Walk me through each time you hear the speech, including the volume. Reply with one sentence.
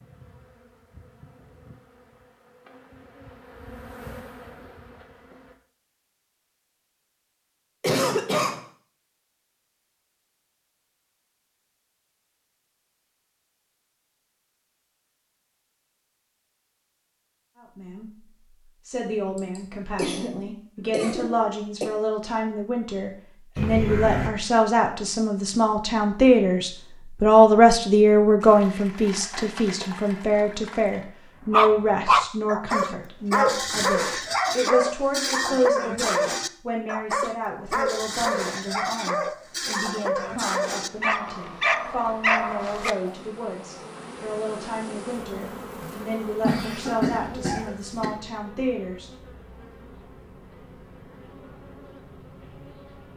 The speech can be heard from 17.6 to 49.1 s, getting louder then quieter.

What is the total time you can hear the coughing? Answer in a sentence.
The coughing can be heard for 5 seconds in total.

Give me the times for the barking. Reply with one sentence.
You can hear the barking from 31.5 to 43.1 s.